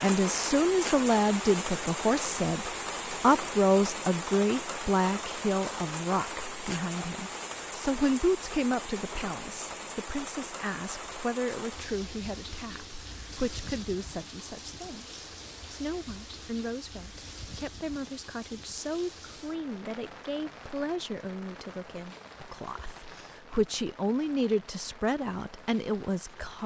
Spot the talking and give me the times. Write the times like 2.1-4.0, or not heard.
0.0-26.6.